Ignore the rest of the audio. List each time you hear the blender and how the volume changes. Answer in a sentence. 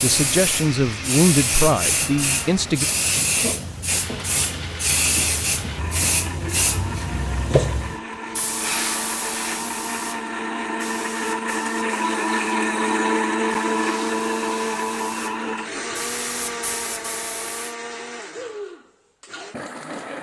You can hear the blender from 0.1 to 20.1 s, getting louder then quieter.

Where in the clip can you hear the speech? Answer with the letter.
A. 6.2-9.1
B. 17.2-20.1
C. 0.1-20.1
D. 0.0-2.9
D.